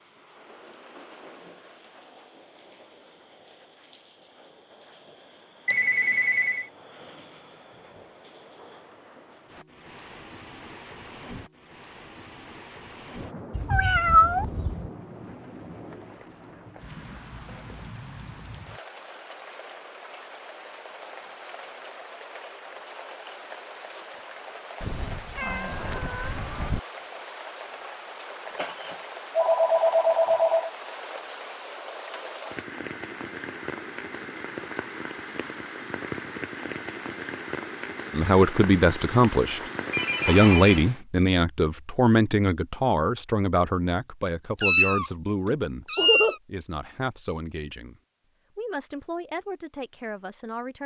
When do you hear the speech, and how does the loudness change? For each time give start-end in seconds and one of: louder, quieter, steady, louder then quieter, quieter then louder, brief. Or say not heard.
38.1-39.6 brief
40.2-50.8 quieter.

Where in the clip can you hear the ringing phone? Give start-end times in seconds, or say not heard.
5.7-6.7, 28.6-30.7, 39.5-40.9.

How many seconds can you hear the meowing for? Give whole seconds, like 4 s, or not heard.
5 s.